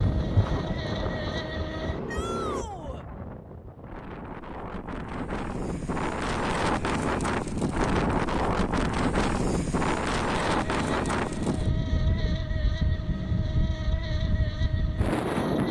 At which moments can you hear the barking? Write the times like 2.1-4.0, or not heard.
not heard.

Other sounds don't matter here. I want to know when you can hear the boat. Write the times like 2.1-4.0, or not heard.
0.0-2.6, 10.4-15.6.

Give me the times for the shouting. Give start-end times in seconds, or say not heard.
2.0-3.0.